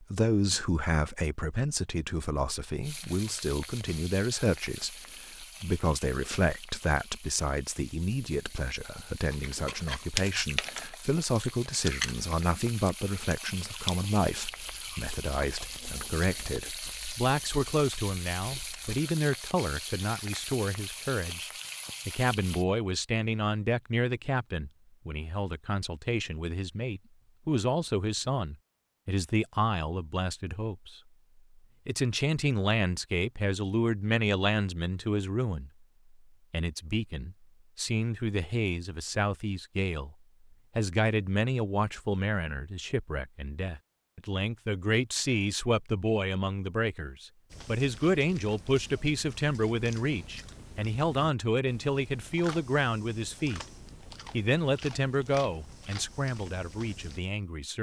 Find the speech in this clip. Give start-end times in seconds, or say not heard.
0.0-31.0, 31.9-35.7, 36.5-40.1, 40.8-53.6, 54.3-57.7.